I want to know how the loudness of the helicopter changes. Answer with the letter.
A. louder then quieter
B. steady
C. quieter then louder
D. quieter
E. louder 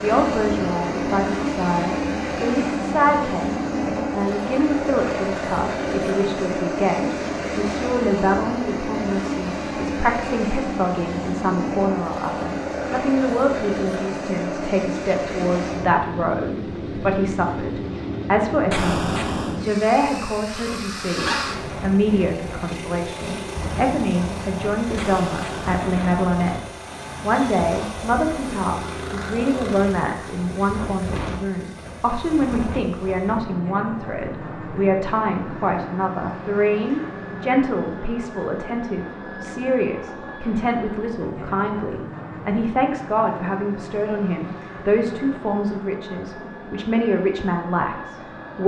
D.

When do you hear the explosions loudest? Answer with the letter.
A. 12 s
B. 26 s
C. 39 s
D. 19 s
D.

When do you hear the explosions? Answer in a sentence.
The explosions can be heard from 18.7 to 19.6 s and from 24.9 to 25.9 s.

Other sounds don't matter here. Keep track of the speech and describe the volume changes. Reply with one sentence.
The loudness of the speech stays about the same.